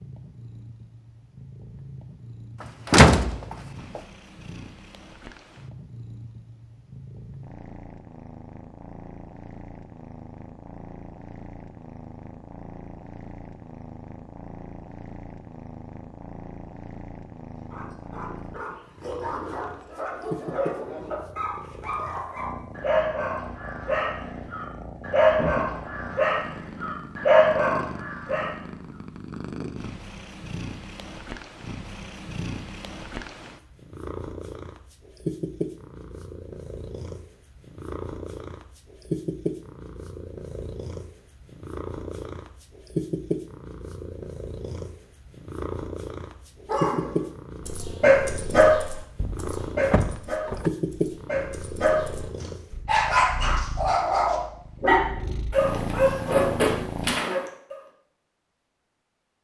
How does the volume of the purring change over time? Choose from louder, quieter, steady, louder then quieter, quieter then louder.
louder.